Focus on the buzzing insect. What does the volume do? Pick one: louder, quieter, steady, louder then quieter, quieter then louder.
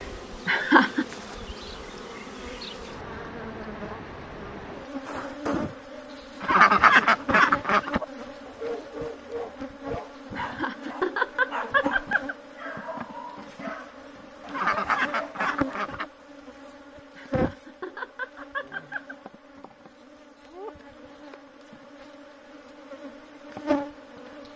steady.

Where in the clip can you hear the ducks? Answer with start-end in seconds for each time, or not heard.
6.4-8.0, 14.4-16.1.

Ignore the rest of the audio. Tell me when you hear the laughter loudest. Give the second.
1 s.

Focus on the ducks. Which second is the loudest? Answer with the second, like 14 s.
7 s.